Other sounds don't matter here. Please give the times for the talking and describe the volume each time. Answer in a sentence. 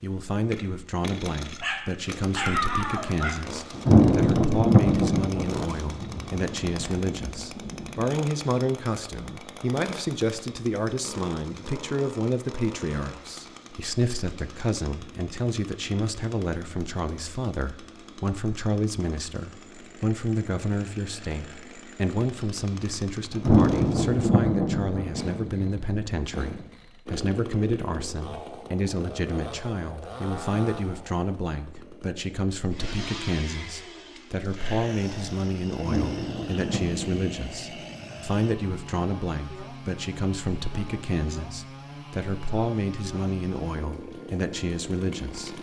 You can hear the talking from 0.0 to 45.5 s, at a steady volume.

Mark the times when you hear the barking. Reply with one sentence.
You can hear the barking from 1.6 to 3.4 s.